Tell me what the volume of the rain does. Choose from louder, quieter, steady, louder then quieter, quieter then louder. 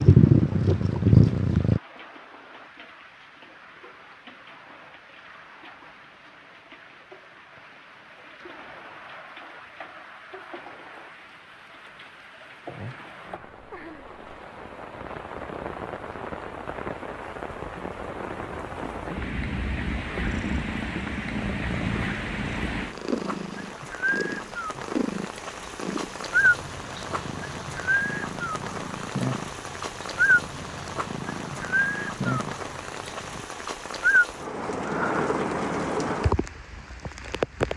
louder.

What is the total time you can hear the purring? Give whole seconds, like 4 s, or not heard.
16 s.